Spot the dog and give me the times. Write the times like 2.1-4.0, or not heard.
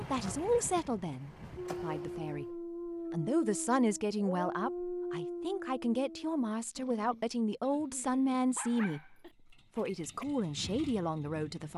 1.6-10.2.